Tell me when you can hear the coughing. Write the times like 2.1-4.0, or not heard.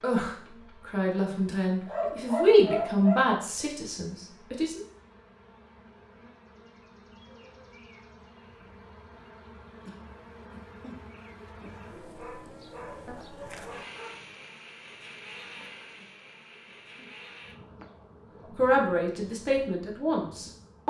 1.5-2.2, 9.8-11.7, 16.0-17.1.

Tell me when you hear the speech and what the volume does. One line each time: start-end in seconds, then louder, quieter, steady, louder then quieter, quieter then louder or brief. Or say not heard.
0.0-4.8 louder then quieter
18.6-20.8 brief.